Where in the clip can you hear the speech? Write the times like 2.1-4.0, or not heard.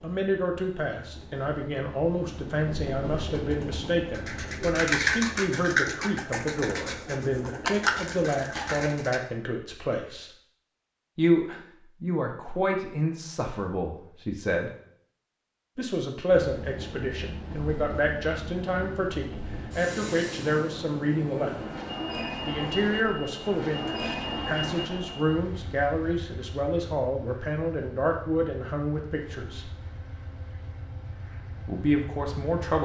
0.0-10.3, 11.2-14.7, 15.8-21.6, 22.4-29.7, 31.6-32.8.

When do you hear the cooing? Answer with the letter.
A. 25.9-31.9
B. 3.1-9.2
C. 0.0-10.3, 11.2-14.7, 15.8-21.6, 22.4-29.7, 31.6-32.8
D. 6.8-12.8
B.